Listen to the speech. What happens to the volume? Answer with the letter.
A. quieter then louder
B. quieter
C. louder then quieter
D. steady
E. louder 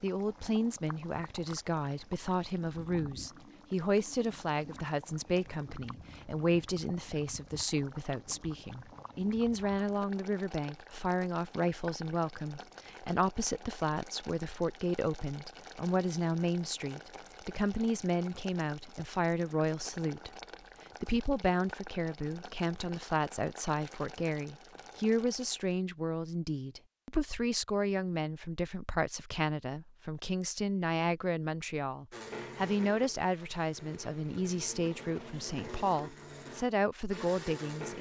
D.